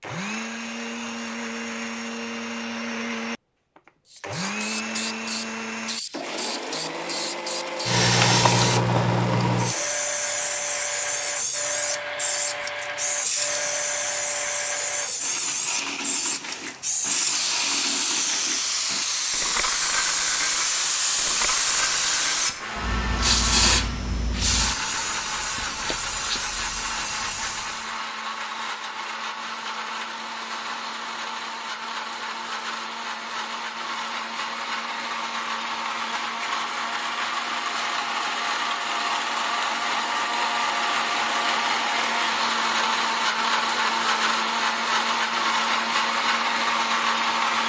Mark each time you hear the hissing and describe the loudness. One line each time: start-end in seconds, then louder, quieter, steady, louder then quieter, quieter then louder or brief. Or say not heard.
4.0-28.0 steady.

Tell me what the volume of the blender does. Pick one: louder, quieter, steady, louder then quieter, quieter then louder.
louder.